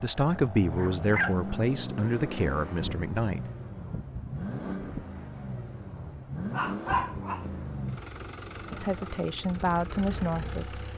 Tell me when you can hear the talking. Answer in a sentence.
You can hear the talking from 0.0 to 3.4 s and from 8.7 to 10.8 s.